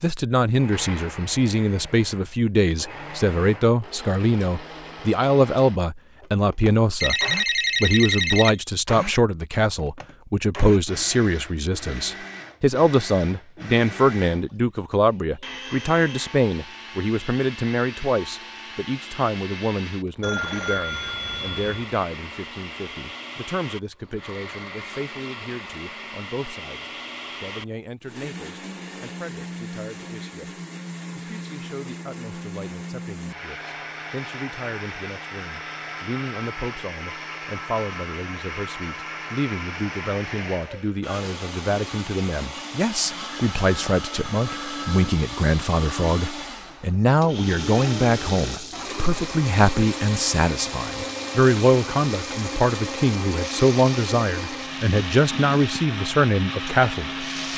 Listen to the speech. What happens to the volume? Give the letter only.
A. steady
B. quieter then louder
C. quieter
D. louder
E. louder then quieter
B.